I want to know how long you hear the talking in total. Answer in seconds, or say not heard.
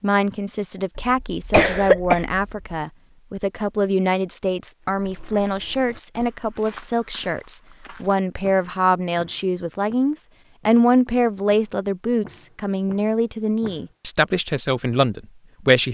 16 s.